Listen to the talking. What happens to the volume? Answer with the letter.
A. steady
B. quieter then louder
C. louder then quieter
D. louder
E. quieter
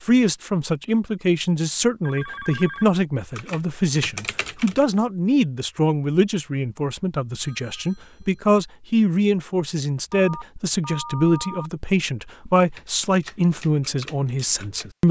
A.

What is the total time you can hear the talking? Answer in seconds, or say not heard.
15 s.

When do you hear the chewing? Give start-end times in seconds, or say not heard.
not heard.